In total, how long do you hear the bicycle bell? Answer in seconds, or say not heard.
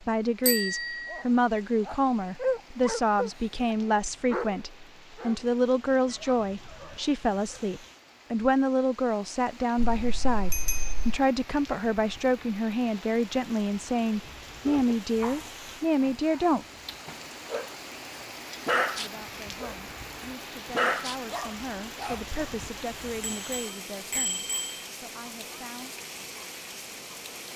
4 s.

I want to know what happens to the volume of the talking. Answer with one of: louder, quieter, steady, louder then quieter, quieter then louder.
quieter.